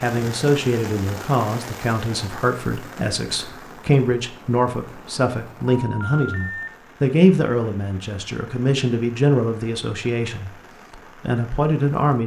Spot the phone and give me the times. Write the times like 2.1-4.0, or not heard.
5.7-6.7.